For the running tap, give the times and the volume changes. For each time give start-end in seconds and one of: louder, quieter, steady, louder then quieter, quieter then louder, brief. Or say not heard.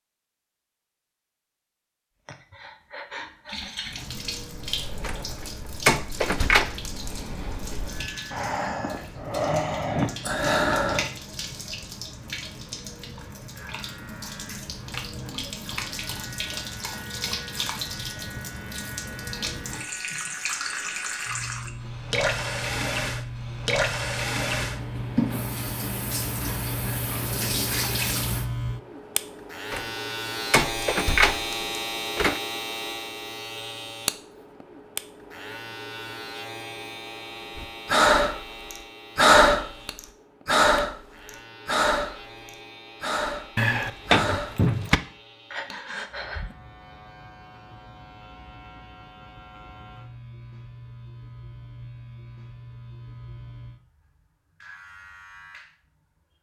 3.5-28.4 louder.